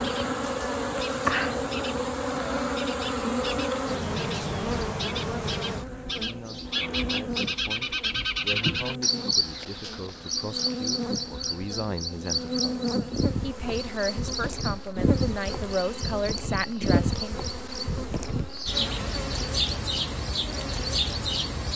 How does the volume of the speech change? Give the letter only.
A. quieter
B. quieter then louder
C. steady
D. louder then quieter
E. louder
E.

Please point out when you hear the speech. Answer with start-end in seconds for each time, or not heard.
6.1-17.4.